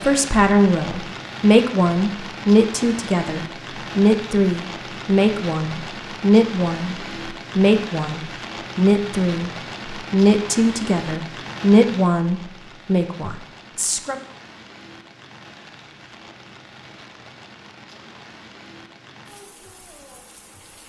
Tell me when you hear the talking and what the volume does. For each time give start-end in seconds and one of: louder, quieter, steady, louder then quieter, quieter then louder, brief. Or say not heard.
0.0-14.2 steady.